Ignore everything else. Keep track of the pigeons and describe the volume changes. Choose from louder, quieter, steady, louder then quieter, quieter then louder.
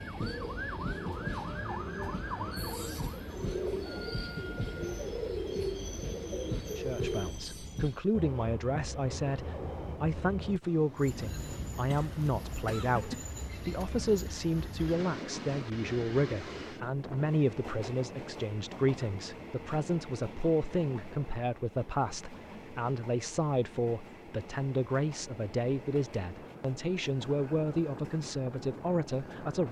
louder.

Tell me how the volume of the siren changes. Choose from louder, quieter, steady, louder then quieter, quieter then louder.
quieter.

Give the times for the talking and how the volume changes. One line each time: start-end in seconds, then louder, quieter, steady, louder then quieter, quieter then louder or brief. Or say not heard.
6.8-29.6 steady.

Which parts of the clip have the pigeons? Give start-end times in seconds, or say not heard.
0.1-7.3.